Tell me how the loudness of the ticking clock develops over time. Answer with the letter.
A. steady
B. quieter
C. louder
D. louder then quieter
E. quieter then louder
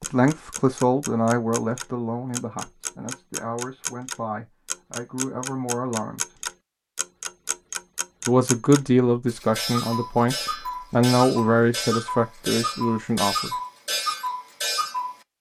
C.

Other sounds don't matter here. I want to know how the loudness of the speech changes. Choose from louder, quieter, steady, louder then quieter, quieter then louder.
quieter then louder.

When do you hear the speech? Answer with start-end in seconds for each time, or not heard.
0.0-6.2, 8.2-13.5.